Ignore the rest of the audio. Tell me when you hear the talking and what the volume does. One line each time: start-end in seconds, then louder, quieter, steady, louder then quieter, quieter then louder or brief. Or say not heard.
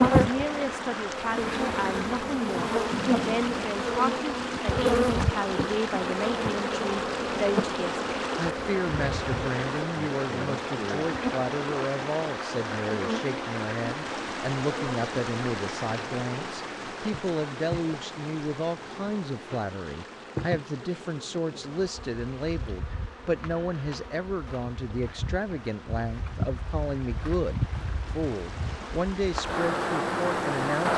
0.1-30.9 steady.